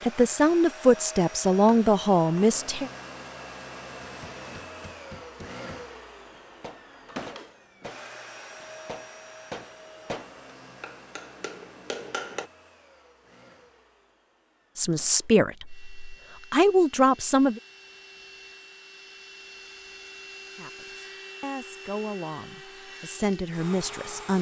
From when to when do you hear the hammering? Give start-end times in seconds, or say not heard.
4.0-12.5.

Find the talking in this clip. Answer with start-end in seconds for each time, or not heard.
0.0-2.9, 14.8-17.6, 20.6-24.3.